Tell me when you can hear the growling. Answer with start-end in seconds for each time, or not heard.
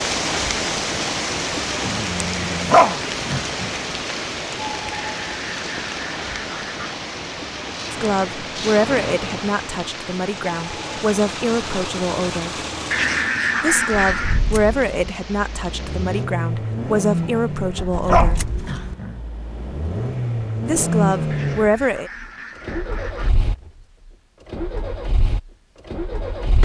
1.8-3.7, 17.2-19.2.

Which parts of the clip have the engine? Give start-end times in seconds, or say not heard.
7.6-26.6.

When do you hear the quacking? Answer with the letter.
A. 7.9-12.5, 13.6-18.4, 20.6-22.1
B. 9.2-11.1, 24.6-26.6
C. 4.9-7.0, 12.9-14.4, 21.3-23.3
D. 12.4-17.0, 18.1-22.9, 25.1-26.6
C.